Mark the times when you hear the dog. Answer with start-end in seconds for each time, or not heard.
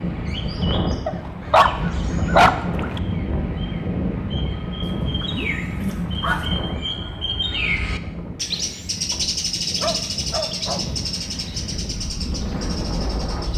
1.1-3.0, 4.8-6.7, 9.1-10.8.